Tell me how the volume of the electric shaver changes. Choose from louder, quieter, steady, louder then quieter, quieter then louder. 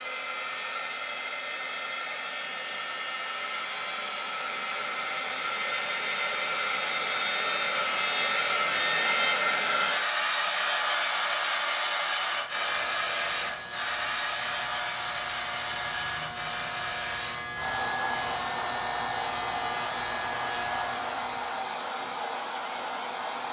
louder.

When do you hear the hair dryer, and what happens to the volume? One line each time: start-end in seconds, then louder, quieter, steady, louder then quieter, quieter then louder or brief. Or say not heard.
0.0-23.4 louder then quieter.